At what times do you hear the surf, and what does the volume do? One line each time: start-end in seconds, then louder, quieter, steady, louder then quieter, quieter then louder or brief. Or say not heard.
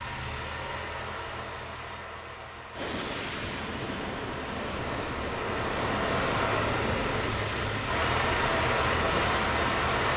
2.7-10.1 steady.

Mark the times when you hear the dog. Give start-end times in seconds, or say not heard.
not heard.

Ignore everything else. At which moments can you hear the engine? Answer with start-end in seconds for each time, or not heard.
0.0-10.1.